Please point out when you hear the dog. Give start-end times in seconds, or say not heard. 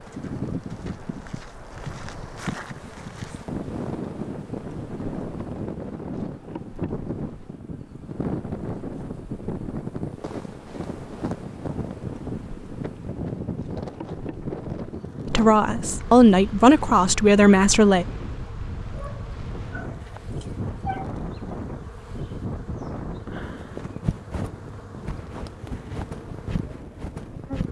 18.8-21.1.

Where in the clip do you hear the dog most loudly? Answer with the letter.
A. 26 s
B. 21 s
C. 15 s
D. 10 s
B.